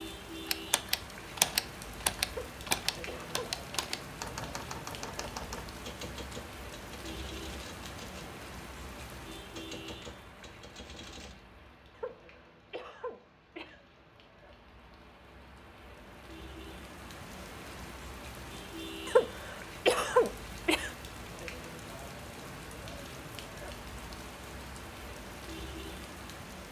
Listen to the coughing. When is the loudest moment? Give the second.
20 s.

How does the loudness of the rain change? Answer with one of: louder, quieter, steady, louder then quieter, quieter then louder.
quieter then louder.